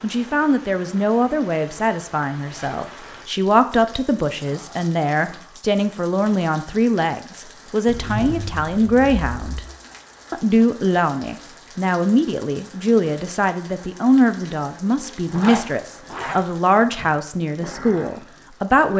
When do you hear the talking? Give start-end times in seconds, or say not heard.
0.0-9.6, 10.3-18.9.